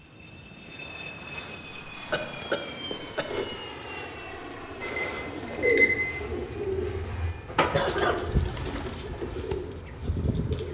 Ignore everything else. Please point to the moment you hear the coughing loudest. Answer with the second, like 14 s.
8 s.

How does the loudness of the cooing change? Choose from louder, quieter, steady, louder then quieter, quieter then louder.
quieter.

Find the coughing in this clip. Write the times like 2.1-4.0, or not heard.
2.1-3.5, 7.5-8.2.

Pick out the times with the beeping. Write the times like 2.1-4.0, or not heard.
4.8-5.9.